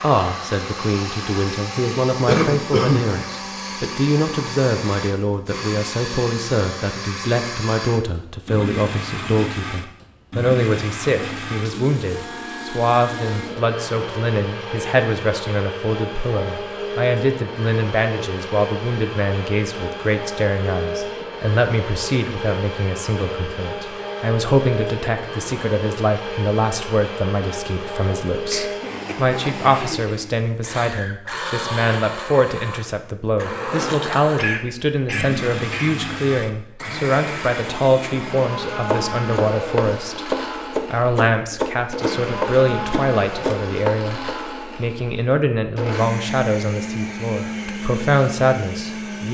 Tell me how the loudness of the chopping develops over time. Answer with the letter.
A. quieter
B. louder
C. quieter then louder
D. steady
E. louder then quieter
D.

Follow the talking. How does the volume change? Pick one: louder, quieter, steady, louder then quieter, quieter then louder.
steady.